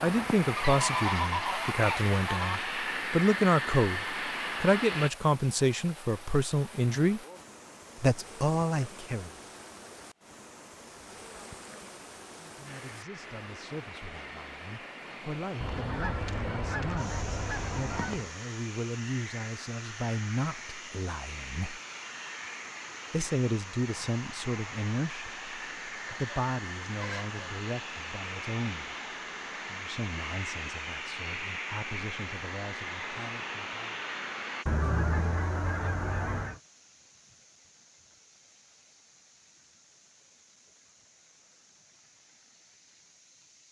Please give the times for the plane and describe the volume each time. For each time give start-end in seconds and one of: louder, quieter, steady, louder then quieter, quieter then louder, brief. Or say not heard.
0.0-5.1 steady
12.7-34.6 louder.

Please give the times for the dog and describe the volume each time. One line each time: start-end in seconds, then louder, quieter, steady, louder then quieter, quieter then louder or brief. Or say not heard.
not heard.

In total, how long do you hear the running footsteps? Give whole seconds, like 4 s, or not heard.
not heard.